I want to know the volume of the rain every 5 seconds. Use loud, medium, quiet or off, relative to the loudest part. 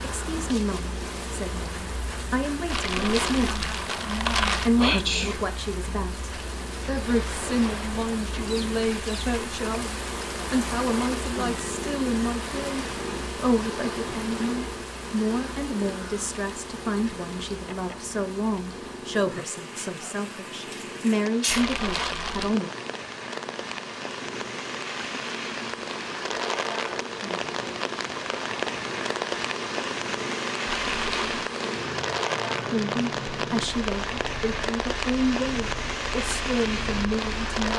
medium, medium, medium, quiet, medium, loud, loud, loud.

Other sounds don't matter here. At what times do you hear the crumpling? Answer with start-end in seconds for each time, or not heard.
2.7-4.7, 21.4-22.6, 30.6-31.4.